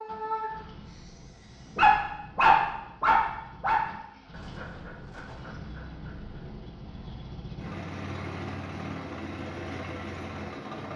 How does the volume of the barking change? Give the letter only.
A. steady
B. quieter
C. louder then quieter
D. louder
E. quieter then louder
C.